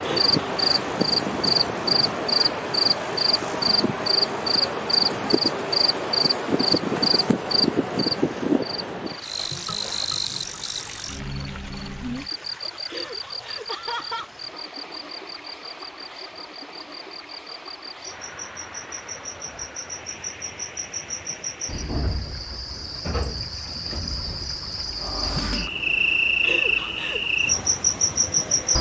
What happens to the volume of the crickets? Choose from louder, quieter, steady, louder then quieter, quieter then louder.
quieter then louder.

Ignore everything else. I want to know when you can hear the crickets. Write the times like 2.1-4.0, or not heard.
0.0-28.7.